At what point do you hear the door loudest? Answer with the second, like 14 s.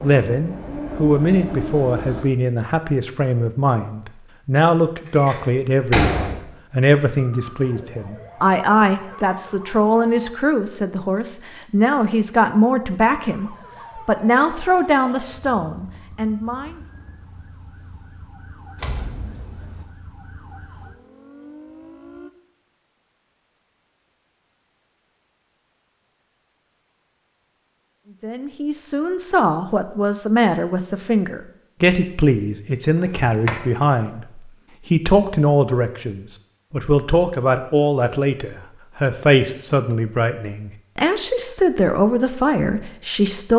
6 s.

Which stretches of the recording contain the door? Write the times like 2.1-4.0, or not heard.
5.2-6.5, 18.8-19.9, 33.1-33.5.